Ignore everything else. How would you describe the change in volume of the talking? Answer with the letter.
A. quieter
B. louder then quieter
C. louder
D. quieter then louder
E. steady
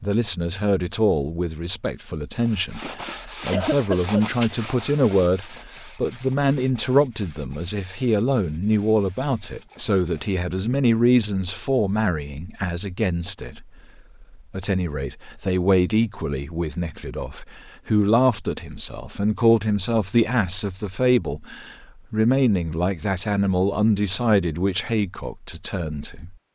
E.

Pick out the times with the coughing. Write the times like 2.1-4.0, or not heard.
3.5-4.2.